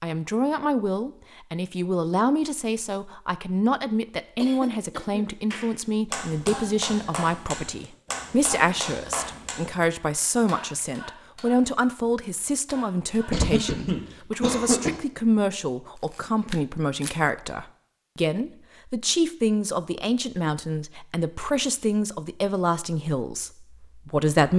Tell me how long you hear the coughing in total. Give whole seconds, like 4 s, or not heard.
3 s.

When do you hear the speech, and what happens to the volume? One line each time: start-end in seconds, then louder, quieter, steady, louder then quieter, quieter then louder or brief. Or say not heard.
0.0-24.5 steady.